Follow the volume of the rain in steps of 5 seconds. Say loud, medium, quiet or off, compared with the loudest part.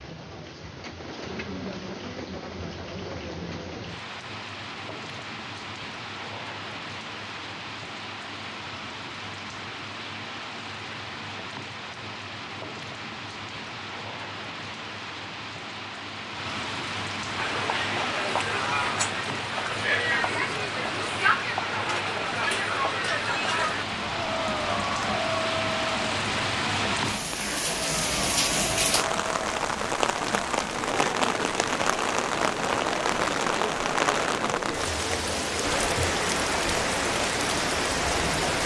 medium, medium, medium, medium, medium, loud, loud, loud.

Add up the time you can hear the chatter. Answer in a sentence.
You can hear the chatter for 21 seconds altogether.